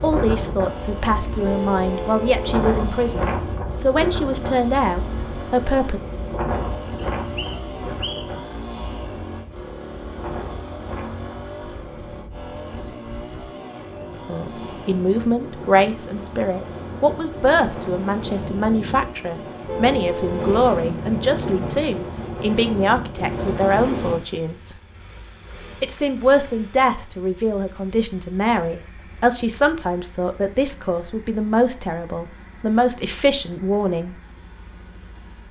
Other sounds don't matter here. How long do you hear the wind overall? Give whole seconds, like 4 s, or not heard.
24 s.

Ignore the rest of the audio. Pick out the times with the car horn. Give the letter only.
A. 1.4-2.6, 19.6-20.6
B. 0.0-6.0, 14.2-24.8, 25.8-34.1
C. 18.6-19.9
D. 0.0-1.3
A.